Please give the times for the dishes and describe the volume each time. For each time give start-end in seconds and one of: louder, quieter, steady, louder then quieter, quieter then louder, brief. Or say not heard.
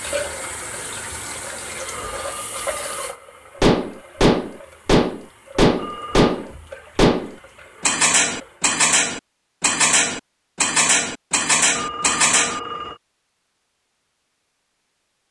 2.8-12.6 steady.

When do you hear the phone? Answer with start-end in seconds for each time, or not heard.
1.9-3.0, 5.8-6.3, 11.8-13.0.